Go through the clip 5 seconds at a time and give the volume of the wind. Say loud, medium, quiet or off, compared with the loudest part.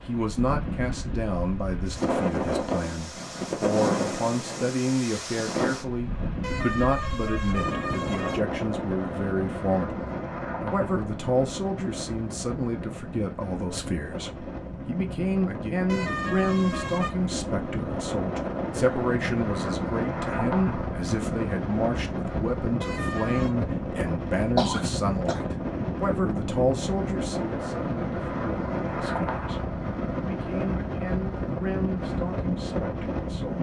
loud, loud, medium, loud, loud, loud, loud.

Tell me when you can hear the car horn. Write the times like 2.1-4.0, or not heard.
6.4-8.4, 15.8-17.1, 22.8-23.6.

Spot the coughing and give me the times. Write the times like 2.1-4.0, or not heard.
24.6-25.4.